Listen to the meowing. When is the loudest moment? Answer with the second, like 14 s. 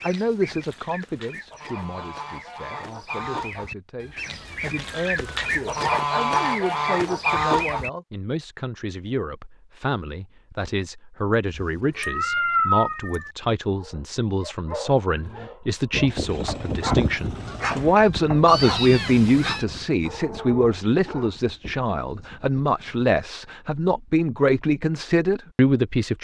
13 s.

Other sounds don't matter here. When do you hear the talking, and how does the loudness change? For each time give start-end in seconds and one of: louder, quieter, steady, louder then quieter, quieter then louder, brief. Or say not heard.
0.0-26.2 louder.